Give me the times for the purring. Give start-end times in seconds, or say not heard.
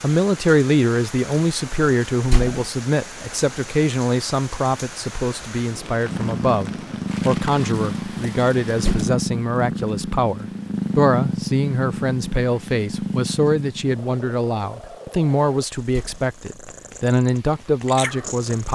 6.0-18.7.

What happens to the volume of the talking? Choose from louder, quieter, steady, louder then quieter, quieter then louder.
steady.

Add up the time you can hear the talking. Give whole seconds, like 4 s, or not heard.
19 s.